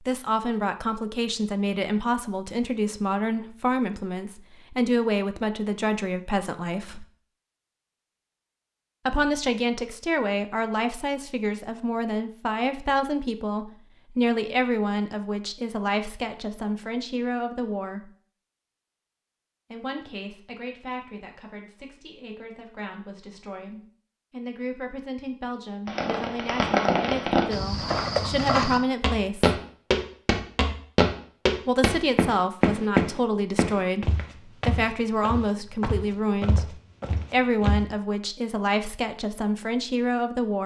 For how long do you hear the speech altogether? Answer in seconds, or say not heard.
35 s.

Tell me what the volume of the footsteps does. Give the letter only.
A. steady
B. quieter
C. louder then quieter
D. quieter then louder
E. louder
B.